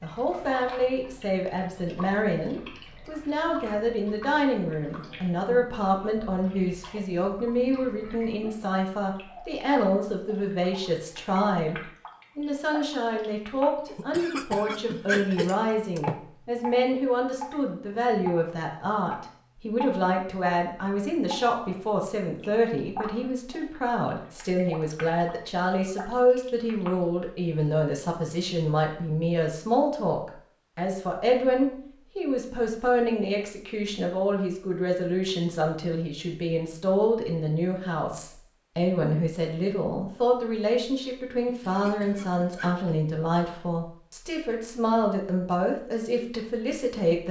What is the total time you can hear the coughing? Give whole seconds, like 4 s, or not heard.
4 s.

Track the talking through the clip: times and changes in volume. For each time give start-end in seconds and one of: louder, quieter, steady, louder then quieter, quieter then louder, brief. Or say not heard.
0.0-47.2 steady.